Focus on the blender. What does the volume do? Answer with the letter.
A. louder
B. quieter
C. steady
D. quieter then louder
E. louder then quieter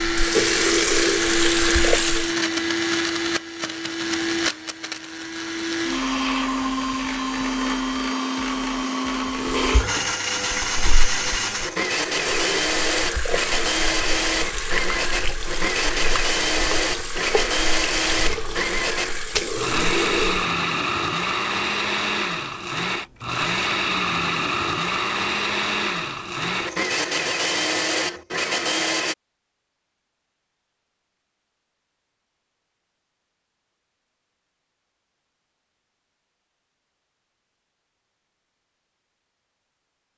C.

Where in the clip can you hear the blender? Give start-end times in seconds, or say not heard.
0.0-29.1.